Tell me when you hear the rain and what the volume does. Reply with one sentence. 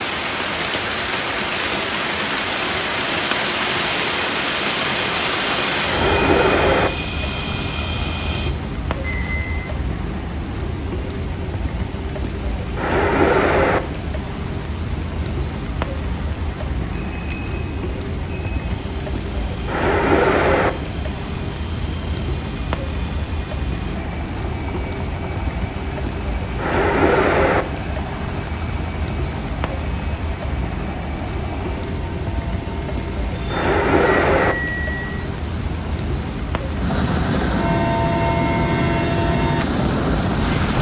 You can hear the rain from 0.0 to 40.7 s, at a steady volume.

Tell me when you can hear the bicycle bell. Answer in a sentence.
You can hear the bicycle bell from 9.0 to 9.7 s, from 16.9 to 18.7 s and from 33.4 to 35.3 s.